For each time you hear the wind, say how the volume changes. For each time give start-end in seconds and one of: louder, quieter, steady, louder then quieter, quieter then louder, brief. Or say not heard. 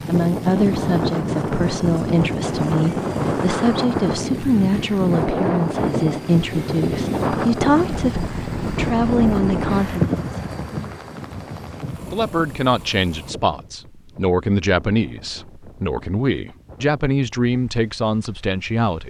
0.0-19.0 quieter.